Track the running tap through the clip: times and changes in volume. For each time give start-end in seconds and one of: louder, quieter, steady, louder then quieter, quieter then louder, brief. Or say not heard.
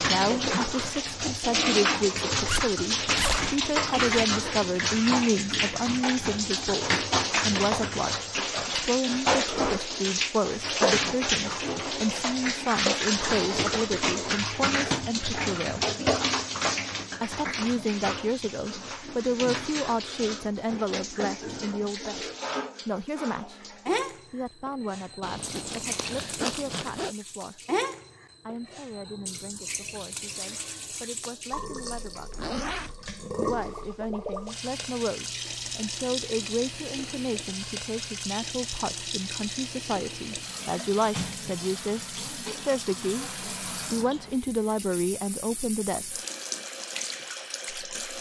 0.0-48.1 quieter.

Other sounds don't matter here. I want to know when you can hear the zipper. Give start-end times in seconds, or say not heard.
2.5-4.2, 25.2-27.1, 32.3-33.0.